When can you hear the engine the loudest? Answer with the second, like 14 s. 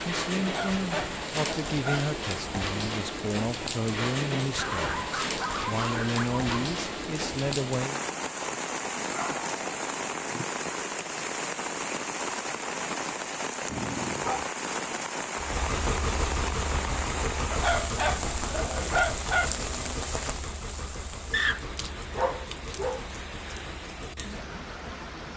16 s.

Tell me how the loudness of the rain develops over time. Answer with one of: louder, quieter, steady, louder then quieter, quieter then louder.
quieter.